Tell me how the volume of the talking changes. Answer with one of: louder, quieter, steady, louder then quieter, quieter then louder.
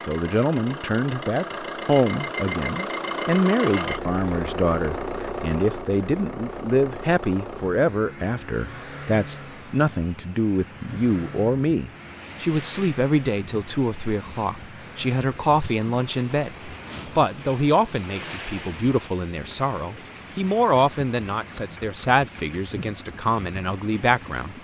steady.